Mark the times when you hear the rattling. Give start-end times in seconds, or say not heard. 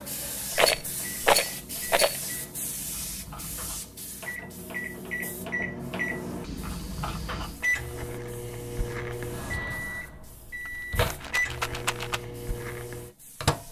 0.6-2.2, 10.4-12.2.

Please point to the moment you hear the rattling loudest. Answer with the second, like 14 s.
1 s.